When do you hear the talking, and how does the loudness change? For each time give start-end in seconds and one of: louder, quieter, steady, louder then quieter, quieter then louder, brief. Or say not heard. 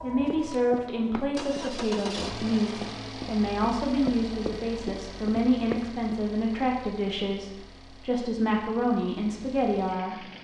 0.0-10.4 steady.